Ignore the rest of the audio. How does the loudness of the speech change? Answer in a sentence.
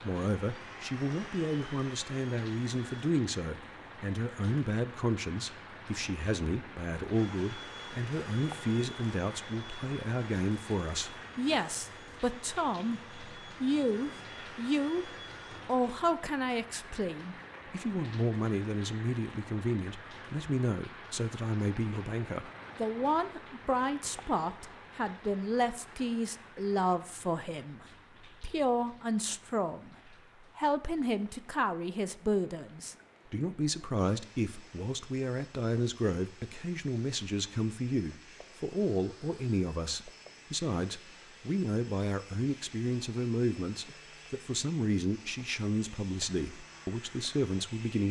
The loudness of the speech stays about the same.